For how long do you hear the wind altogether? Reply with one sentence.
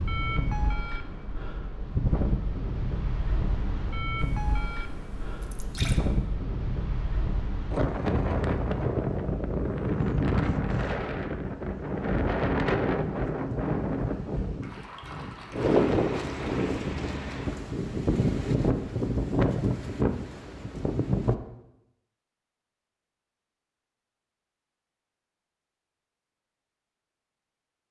The wind can be heard for 21 seconds in total.